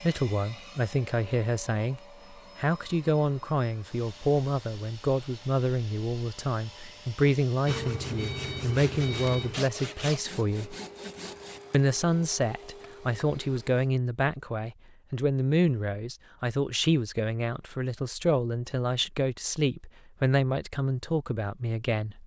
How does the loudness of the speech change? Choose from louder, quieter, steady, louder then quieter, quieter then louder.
steady.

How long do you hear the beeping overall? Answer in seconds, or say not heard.
2 s.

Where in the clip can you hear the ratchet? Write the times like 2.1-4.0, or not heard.
not heard.